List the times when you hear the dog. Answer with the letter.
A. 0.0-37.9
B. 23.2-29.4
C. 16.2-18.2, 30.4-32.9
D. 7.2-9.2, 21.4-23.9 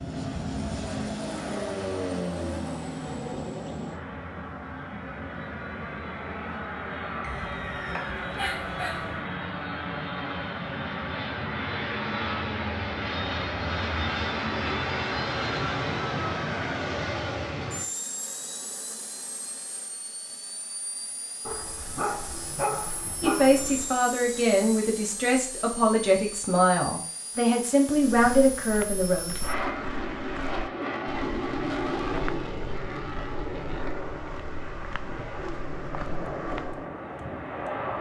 D.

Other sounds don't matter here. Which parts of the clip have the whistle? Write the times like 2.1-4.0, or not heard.
7.2-8.2.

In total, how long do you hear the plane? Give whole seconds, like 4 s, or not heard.
38 s.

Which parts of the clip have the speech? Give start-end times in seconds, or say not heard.
23.2-29.4.